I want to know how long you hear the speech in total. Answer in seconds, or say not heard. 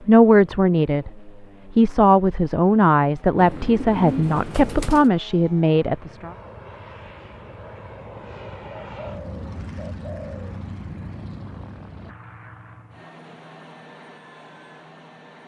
6 s.